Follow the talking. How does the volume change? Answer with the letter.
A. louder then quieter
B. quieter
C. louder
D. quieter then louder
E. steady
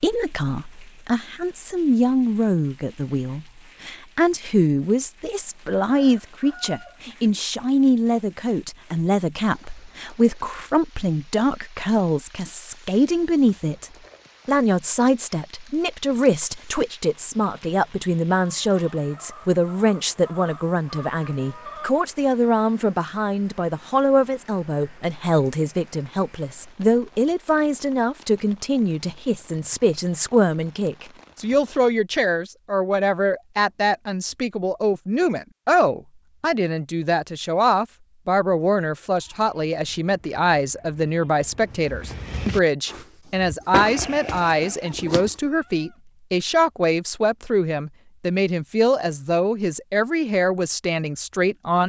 E.